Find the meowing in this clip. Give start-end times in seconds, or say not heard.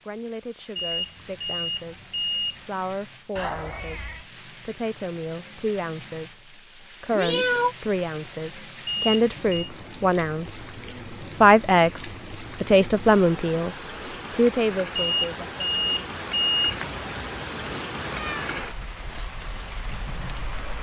3.4-4.2, 7.1-7.8, 16.6-18.7.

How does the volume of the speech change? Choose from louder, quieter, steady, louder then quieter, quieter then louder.
louder.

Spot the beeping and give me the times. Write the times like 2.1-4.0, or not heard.
0.8-2.6, 8.8-9.7, 14.9-16.8.